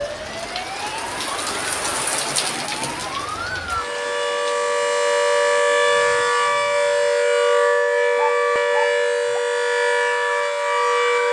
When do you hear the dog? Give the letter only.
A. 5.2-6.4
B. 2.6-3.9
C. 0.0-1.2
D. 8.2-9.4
D.